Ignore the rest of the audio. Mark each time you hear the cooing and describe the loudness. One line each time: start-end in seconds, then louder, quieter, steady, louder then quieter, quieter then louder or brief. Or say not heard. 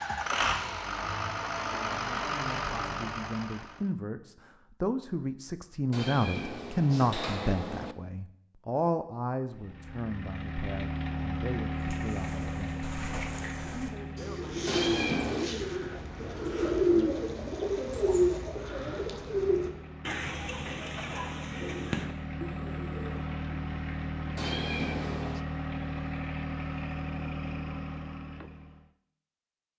11.8-23.3 louder then quieter.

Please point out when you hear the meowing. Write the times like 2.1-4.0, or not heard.
5.9-8.0, 14.7-15.6, 24.4-25.4.